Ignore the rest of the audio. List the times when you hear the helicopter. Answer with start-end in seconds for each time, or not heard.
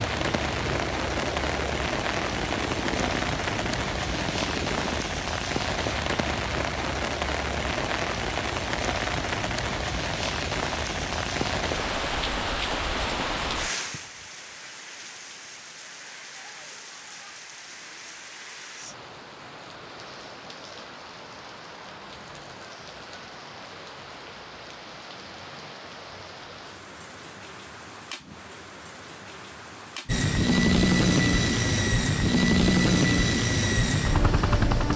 0.0-5.0, 30.1-34.9.